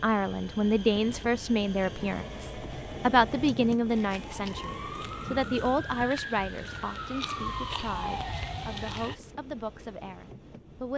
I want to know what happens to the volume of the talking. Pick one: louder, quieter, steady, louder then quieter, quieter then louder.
quieter.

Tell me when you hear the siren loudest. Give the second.
8 s.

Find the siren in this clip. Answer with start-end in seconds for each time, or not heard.
3.9-9.2.